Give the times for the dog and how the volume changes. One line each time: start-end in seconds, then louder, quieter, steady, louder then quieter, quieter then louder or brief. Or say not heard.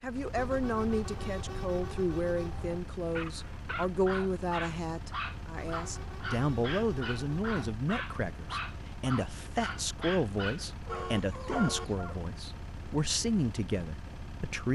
3.1-12.2 steady.